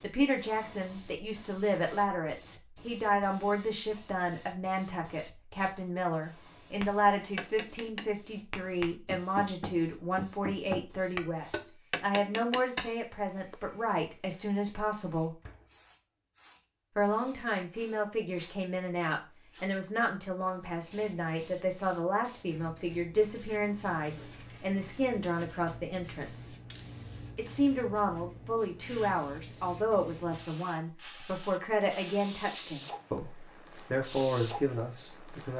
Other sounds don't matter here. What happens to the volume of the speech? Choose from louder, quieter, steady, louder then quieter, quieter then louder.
steady.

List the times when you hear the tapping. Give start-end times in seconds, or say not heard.
6.8-13.6.